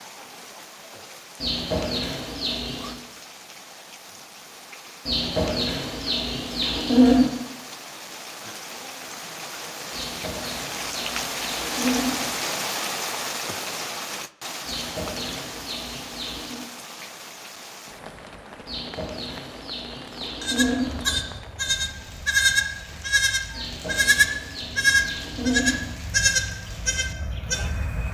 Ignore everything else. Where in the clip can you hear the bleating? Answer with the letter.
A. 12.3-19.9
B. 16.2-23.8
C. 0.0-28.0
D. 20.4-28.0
D.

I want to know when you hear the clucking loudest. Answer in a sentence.
The loudest moment of the clucking is at 7 seconds.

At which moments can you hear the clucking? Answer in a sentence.
The clucking can be heard from 1.4 to 3.0 s, from 5.0 to 7.3 s, from 9.9 to 12.3 s, from 14.7 to 16.6 s, from 18.6 to 21.2 s and from 23.5 to 25.9 s.